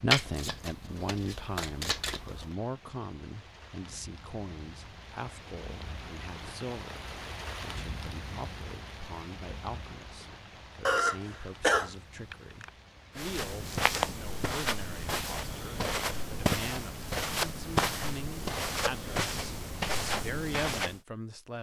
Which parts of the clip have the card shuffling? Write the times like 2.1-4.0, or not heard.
0.1-2.5.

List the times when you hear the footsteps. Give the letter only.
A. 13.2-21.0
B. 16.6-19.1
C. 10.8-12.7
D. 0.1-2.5
A.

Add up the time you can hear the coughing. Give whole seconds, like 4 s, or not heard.
2 s.